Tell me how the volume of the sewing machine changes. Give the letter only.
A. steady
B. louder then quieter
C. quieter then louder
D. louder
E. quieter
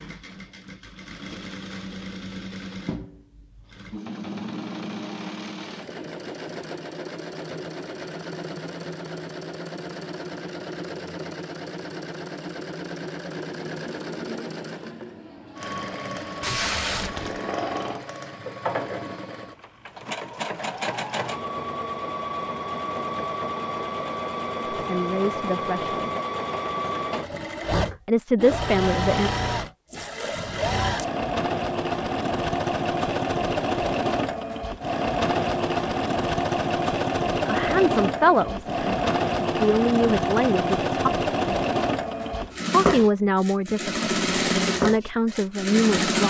D.